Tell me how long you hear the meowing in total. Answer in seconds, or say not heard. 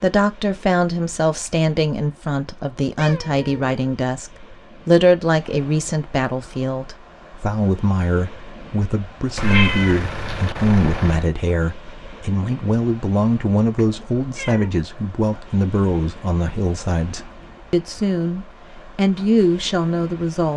4 s.